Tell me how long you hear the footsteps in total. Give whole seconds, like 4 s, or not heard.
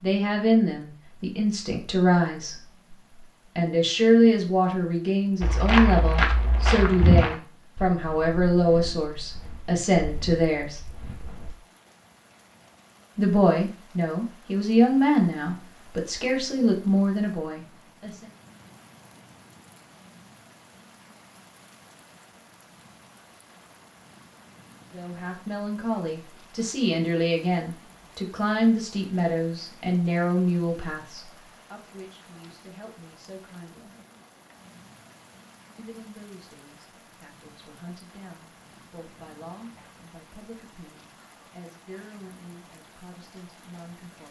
6 s.